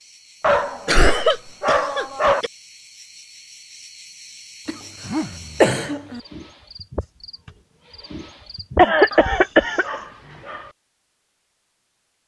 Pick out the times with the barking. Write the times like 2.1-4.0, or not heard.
0.4-2.5, 5.0-5.8, 9.1-10.8.